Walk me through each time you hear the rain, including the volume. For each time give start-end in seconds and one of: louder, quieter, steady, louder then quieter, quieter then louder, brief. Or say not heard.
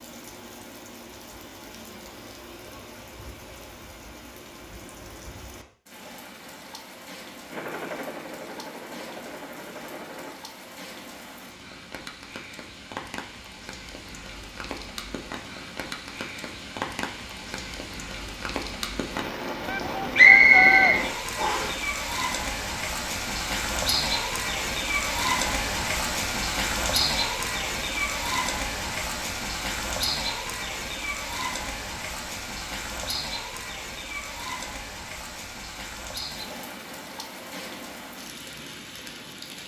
0.0-39.6 louder then quieter.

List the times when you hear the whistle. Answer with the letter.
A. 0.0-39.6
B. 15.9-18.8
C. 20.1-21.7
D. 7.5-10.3
C.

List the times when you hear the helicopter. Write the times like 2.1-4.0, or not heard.
7.5-10.3.